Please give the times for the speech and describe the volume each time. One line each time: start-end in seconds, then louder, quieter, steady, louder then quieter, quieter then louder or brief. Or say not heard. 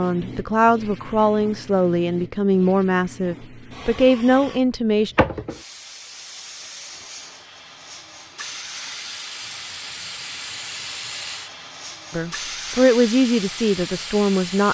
0.0-5.2 quieter then louder
12.1-14.7 brief.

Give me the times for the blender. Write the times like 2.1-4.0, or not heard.
not heard.